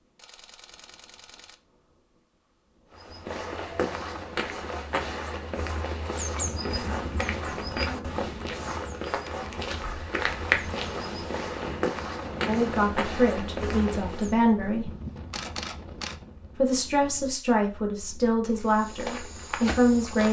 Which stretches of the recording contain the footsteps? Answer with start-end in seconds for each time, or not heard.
2.9-14.3, 18.4-20.2.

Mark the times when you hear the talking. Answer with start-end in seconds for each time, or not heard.
12.4-14.9, 16.6-20.2.